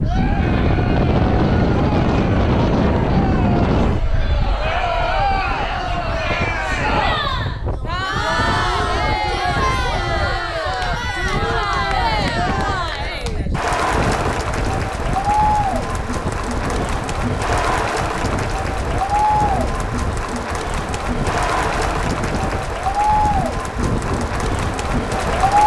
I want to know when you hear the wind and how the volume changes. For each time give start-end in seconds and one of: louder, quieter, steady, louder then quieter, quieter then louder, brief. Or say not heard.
0.0-25.6 quieter.